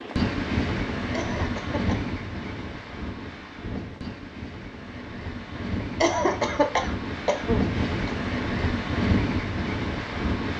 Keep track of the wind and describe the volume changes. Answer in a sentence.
The volume of the wind goes down, then up.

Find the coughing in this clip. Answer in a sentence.
You can hear the coughing from 1.1 to 2.0 s and from 5.8 to 8.1 s.